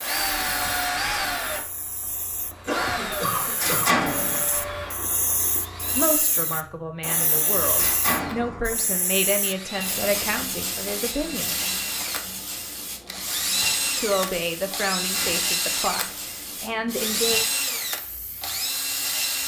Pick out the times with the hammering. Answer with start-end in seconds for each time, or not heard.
not heard.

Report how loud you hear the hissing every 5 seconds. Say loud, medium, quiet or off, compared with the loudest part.
medium, loud, loud, medium.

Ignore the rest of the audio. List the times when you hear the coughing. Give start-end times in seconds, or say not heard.
2.6-4.0.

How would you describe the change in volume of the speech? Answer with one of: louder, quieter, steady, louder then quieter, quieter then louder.
steady.